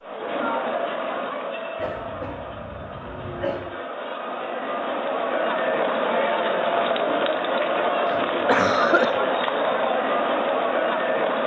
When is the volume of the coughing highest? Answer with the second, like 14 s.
9 s.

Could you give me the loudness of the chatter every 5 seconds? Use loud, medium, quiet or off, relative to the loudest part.
medium, loud, loud.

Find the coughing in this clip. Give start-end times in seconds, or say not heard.
1.8-3.7, 8.1-9.2.